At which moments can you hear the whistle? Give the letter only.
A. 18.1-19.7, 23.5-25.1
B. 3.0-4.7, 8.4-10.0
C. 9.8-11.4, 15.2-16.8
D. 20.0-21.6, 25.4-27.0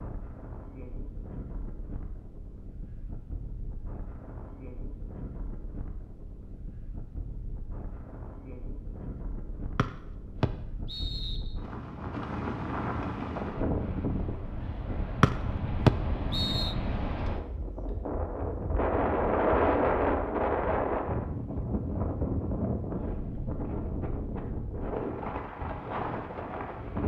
C.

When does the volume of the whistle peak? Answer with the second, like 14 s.
16 s.